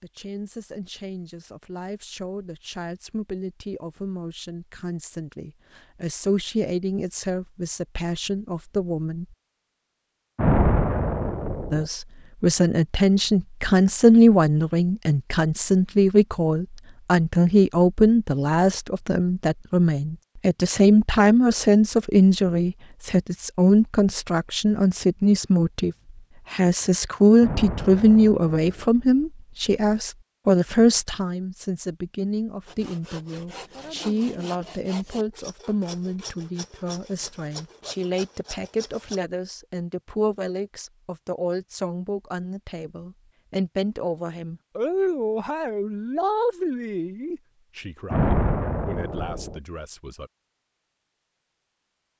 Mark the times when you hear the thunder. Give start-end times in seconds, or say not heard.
10.3-11.9, 27.4-28.9, 48.1-49.6.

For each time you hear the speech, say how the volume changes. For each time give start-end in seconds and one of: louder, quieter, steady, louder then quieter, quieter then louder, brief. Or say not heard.
0.0-9.2 louder
11.7-50.3 quieter.